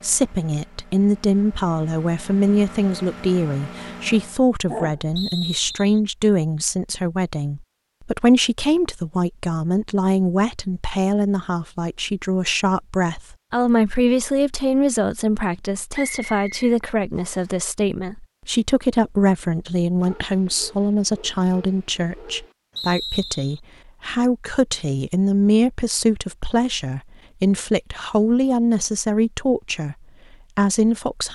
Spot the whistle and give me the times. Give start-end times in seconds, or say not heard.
5.2-6.0, 15.9-17.5, 22.8-23.6.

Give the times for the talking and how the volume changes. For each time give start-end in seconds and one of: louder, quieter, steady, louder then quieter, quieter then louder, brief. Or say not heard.
0.0-29.9 steady
30.6-31.3 brief.